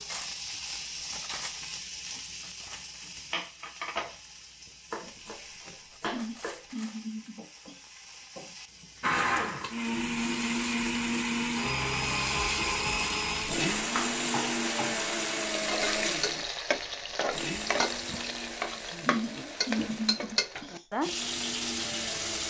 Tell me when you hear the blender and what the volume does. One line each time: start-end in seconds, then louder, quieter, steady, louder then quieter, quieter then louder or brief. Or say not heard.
9.0-22.4 quieter.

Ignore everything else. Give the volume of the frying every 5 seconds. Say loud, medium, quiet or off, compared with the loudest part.
medium, quiet, loud, loud, loud.